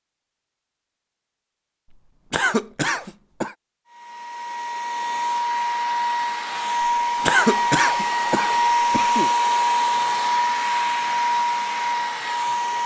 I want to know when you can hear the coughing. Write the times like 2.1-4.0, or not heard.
2.3-3.5, 7.2-9.3.